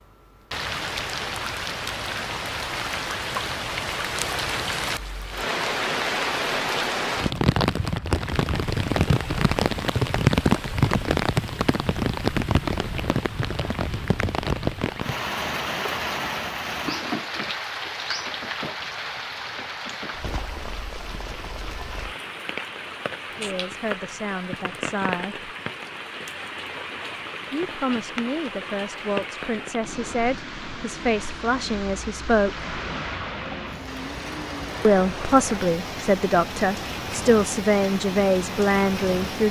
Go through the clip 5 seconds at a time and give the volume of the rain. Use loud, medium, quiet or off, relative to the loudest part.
medium, loud, loud, medium, medium, medium, medium, medium.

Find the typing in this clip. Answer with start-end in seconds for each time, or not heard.
not heard.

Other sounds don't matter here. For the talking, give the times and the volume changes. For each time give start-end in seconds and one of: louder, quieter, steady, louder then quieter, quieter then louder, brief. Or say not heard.
23.4-25.5 brief
27.5-32.7 steady
34.8-39.4 steady.